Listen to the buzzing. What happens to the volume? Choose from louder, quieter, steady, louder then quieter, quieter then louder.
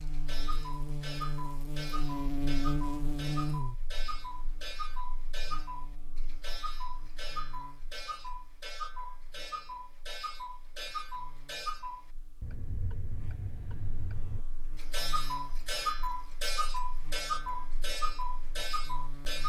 quieter then louder.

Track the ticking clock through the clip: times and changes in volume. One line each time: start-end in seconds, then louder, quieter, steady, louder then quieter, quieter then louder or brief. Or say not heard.
0.0-19.4 louder.